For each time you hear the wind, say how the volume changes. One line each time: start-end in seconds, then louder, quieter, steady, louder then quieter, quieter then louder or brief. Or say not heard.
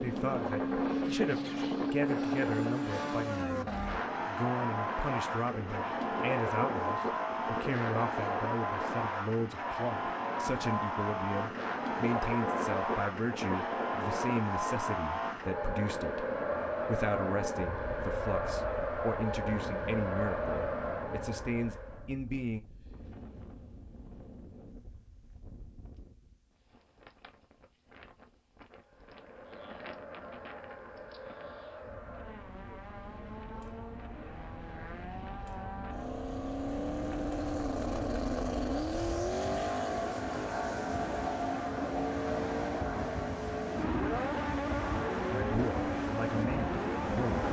0.0-47.4 quieter then louder.